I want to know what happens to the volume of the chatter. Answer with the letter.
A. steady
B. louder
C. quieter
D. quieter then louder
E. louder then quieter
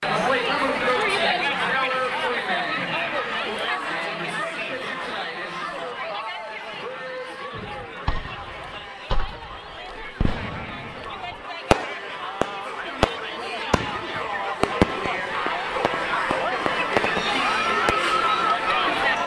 D.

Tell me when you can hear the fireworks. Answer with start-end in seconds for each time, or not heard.
7.5-17.9.